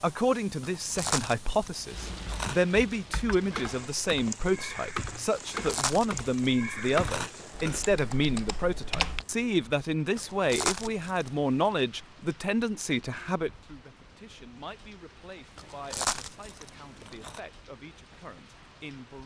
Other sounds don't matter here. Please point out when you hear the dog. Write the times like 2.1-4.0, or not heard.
not heard.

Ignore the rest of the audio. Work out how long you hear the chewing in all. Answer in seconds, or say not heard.
8 s.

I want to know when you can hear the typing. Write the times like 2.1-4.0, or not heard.
1.9-9.2.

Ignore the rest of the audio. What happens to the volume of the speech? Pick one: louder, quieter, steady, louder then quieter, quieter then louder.
quieter.